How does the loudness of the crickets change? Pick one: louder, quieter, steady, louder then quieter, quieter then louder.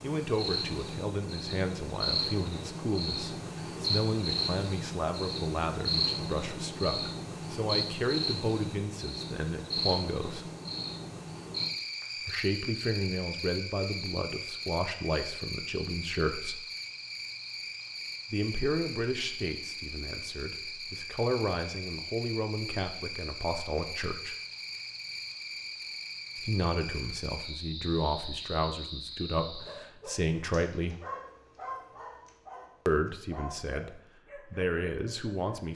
quieter.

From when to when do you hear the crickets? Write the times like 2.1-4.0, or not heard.
0.0-29.9.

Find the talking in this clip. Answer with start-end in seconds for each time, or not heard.
0.0-10.5, 12.2-16.6, 18.3-24.4, 26.4-31.0, 32.9-35.7.